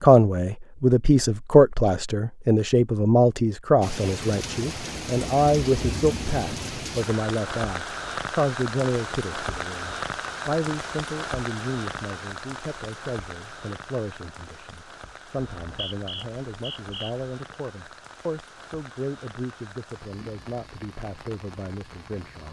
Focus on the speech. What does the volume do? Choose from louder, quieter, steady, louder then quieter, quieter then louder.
quieter.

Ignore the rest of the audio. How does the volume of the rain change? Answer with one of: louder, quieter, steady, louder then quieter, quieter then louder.
quieter.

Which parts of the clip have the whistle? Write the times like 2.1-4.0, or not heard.
15.5-17.1.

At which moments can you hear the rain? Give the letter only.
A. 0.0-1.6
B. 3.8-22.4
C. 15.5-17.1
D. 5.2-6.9
B.